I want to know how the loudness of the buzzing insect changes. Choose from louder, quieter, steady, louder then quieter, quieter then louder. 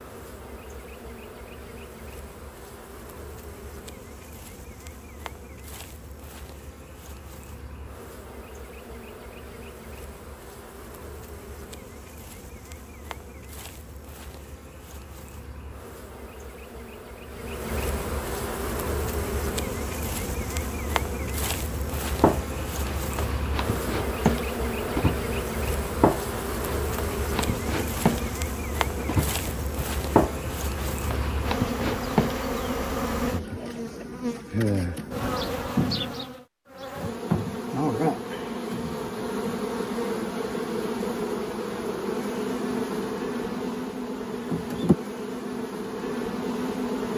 louder.